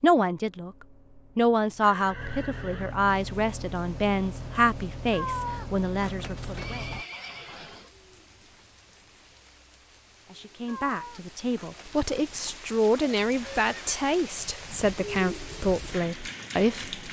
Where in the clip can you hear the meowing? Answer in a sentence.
You can hear the meowing from 5.1 to 7.0 s and from 10.7 to 12.6 s.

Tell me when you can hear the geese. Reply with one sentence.
You can't hear the geese here.